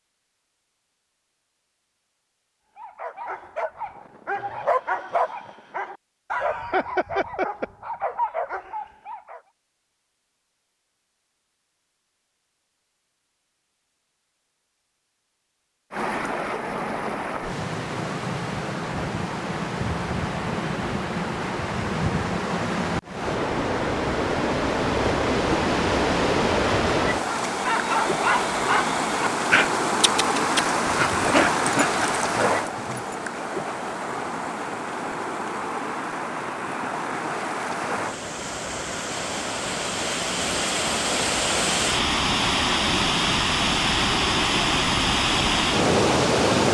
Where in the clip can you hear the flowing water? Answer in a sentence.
You can hear the flowing water from 15.9 to 46.6 s.